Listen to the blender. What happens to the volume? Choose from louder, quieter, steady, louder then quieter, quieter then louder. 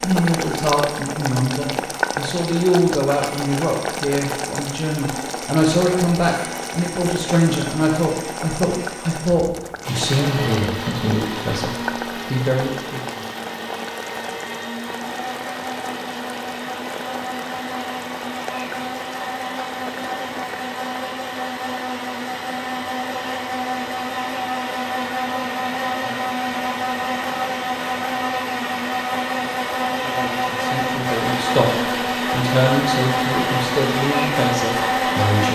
louder.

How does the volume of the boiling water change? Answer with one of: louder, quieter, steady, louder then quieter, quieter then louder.
quieter.